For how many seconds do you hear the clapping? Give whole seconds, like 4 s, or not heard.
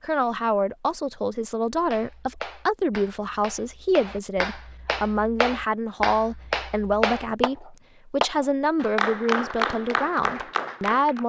9 s.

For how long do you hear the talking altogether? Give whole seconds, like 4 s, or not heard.
11 s.